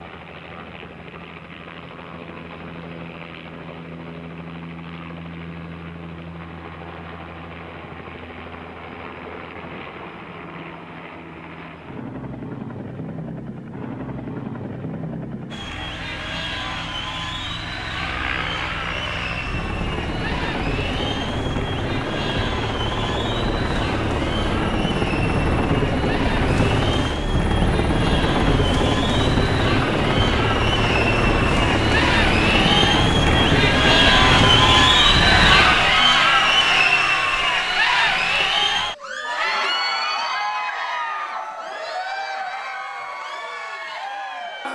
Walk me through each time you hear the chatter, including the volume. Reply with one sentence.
The chatter can be heard from 15.5 to 44.7 s, getting louder then quieter.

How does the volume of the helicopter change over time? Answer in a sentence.
The volume of the helicopter goes up.